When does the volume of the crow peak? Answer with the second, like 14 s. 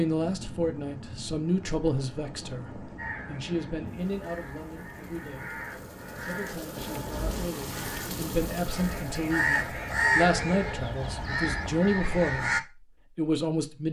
10 s.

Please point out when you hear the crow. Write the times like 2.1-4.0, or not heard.
3.0-12.6.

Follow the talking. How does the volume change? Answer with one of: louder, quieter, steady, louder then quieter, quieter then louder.
quieter then louder.